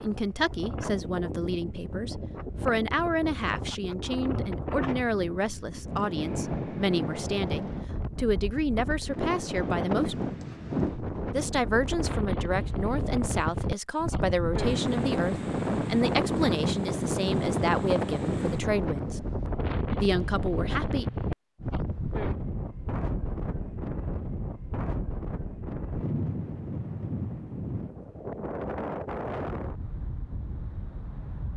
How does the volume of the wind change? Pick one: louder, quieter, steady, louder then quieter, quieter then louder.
louder then quieter.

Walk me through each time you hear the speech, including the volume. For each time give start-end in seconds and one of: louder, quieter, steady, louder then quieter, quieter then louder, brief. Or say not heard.
0.0-10.3 steady
11.3-19.2 steady
20.0-21.1 brief.